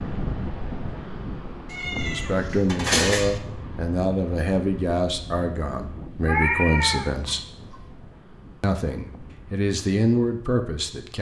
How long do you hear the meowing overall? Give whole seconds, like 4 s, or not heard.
3 s.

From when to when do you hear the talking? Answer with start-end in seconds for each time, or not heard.
1.9-7.5, 8.6-11.1.